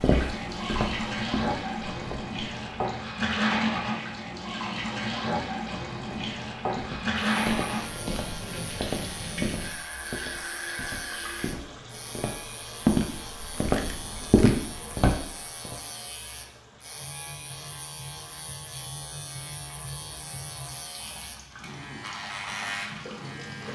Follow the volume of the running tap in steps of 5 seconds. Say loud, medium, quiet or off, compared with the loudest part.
loud, loud, medium, quiet, quiet.